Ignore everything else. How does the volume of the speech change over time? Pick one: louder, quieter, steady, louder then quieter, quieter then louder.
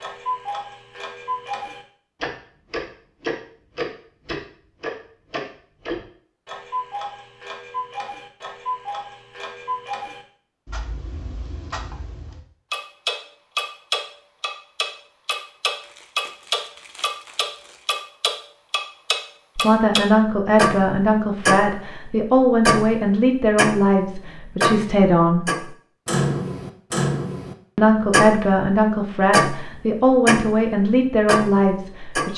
steady.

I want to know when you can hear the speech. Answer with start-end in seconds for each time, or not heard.
19.6-25.4, 27.8-32.3.